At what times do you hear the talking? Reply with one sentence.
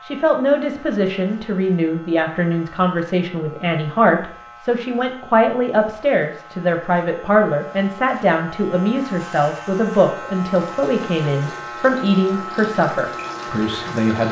The talking can be heard from 0.1 to 14.2 s.